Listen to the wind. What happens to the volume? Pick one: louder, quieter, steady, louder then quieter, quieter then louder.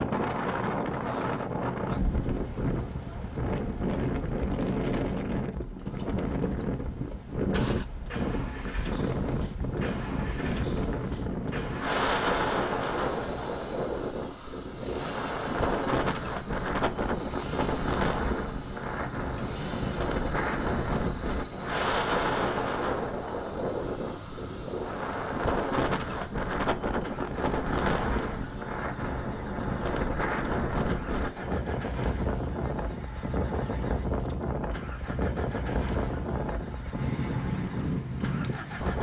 steady.